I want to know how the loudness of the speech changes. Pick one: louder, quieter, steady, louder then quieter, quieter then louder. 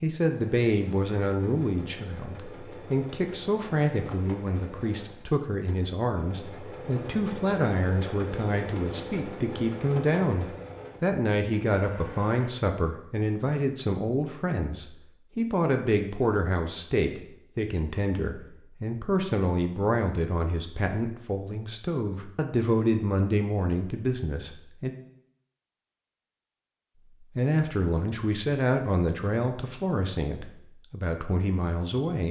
steady.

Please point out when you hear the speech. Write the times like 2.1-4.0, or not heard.
0.0-24.9, 27.4-32.2.